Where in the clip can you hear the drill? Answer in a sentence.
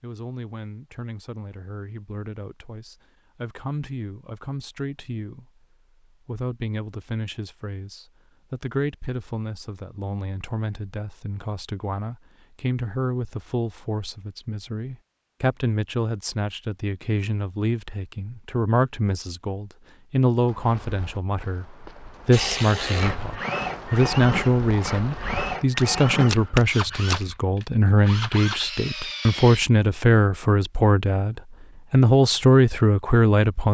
You can hear the drill from 22.3 to 29.6 s.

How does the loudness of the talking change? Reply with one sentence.
The volume of the talking goes up.